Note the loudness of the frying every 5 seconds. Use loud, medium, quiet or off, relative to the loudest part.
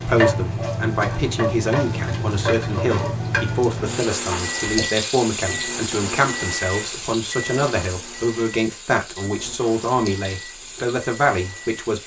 loud, medium, quiet.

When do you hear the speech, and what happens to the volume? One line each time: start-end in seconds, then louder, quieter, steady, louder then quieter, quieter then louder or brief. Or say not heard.
0.1-12.0 steady.